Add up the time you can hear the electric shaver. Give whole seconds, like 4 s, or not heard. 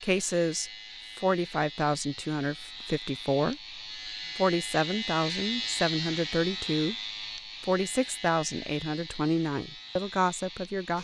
11 s.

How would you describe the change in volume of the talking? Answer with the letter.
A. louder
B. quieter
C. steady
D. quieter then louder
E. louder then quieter
C.